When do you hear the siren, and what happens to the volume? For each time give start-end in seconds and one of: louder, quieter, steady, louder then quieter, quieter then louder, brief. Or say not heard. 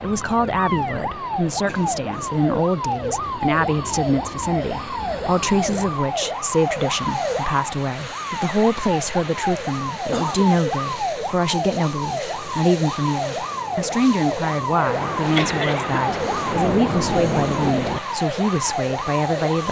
0.0-19.6 steady.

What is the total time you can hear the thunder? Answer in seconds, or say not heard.
3 s.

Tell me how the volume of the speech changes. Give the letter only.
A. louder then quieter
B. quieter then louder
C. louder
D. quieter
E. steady
E.